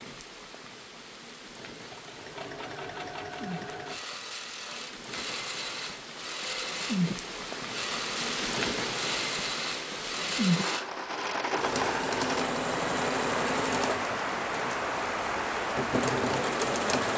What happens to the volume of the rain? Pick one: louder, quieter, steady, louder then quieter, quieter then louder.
louder.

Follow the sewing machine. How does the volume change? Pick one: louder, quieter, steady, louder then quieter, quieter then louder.
louder.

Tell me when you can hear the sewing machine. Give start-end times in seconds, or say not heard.
1.7-17.1.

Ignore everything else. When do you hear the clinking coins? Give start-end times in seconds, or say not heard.
not heard.